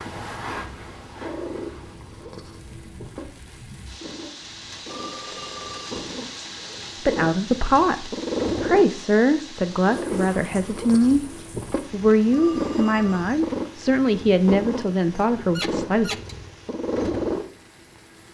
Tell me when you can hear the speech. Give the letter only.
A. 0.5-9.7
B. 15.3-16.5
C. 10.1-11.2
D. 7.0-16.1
D.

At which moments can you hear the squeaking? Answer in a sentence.
You can hear the squeaking from 15.3 to 16.5 s.